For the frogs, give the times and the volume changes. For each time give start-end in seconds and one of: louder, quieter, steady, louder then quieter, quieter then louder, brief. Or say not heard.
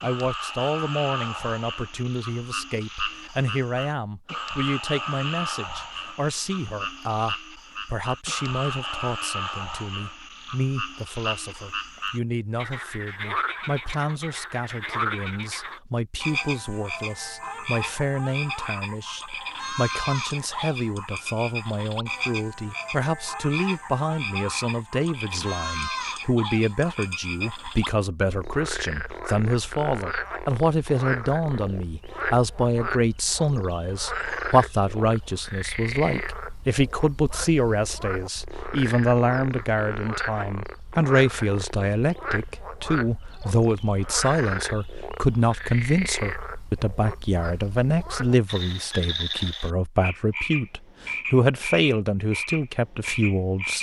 0.0-53.7 steady.